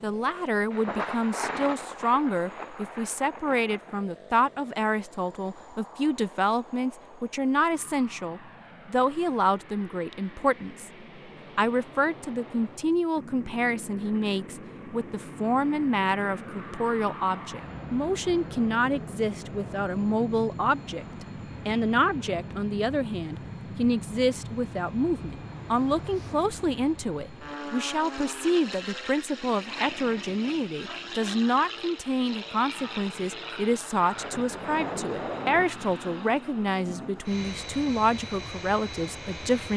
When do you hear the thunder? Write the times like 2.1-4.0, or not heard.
0.7-4.0, 34.1-35.6.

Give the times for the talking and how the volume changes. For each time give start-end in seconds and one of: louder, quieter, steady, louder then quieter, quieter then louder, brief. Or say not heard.
0.0-10.9 steady
11.6-39.7 steady.